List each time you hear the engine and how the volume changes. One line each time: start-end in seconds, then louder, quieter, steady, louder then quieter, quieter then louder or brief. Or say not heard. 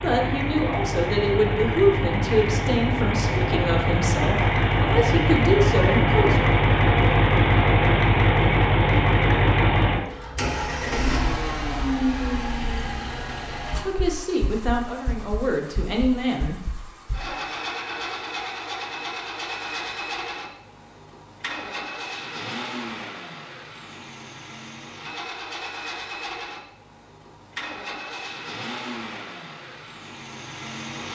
0.0-31.0 quieter.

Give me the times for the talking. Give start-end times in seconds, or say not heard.
0.0-6.3, 13.8-16.6.